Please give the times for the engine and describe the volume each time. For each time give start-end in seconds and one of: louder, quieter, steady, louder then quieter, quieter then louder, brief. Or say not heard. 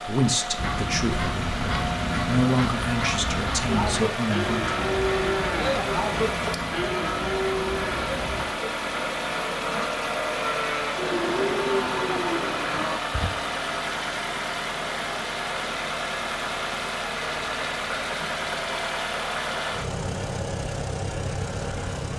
0.0-22.1 steady.